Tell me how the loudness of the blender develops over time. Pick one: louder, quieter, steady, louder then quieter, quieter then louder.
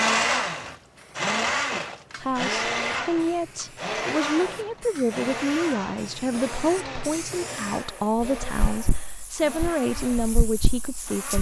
quieter.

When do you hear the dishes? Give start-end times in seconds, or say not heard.
not heard.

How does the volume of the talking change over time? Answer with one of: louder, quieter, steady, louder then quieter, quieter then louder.
steady.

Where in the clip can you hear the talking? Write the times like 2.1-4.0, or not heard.
2.2-11.3.